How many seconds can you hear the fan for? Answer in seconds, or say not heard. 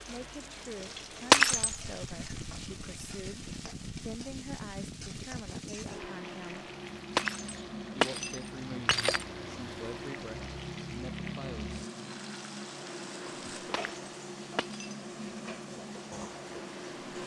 17 s.